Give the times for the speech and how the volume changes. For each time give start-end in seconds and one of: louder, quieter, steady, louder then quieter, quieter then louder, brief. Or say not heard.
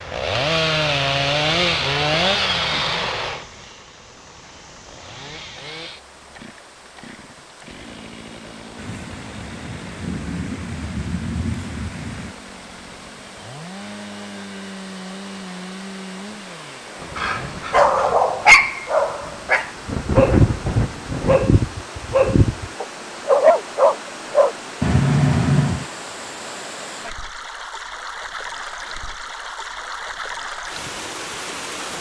not heard.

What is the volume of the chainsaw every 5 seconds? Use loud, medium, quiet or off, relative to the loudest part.
loud, quiet, quiet, quiet, off, off, off.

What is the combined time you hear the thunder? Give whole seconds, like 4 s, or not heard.
8 s.